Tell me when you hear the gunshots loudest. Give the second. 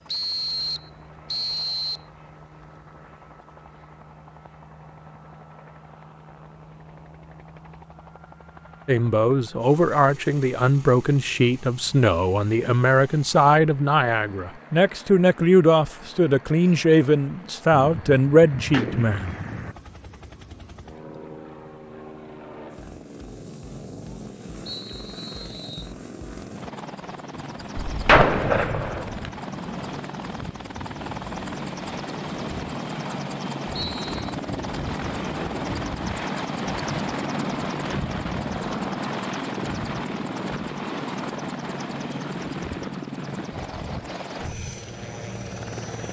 28 s.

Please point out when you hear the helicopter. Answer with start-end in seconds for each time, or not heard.
0.0-46.0.